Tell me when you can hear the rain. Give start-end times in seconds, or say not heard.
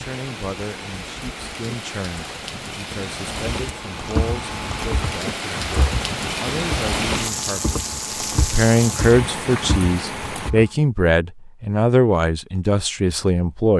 0.0-10.6.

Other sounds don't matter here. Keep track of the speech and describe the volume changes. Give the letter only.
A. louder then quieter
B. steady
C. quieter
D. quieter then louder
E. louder
E.